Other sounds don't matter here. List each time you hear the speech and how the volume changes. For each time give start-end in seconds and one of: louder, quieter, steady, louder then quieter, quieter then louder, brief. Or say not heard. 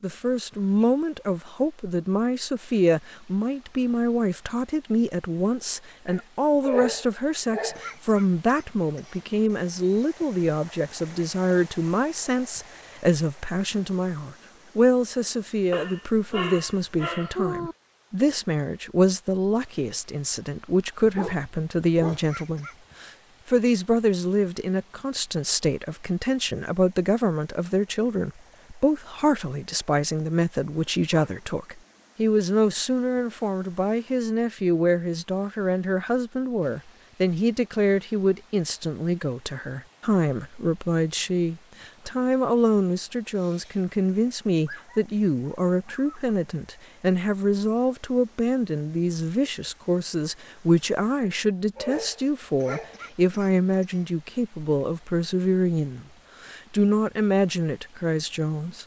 0.0-58.8 steady.